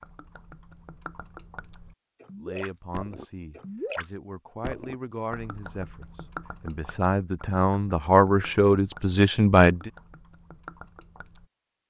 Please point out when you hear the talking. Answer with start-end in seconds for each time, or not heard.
2.4-9.9.